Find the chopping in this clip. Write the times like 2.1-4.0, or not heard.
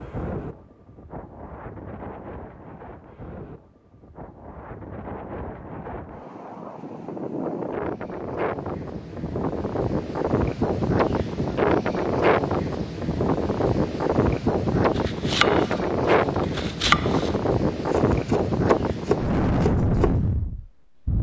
14.8-20.1.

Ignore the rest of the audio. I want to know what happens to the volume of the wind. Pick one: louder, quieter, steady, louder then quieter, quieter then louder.
louder.